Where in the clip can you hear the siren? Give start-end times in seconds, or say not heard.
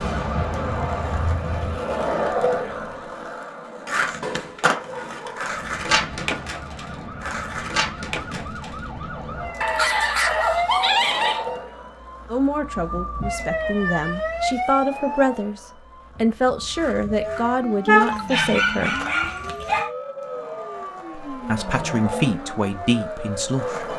0.0-3.2, 5.5-23.9.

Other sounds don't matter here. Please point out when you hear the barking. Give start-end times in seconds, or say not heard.
4.2-5.5, 9.6-11.6, 18.1-19.9.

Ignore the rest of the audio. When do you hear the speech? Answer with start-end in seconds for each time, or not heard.
12.3-18.9, 21.3-23.9.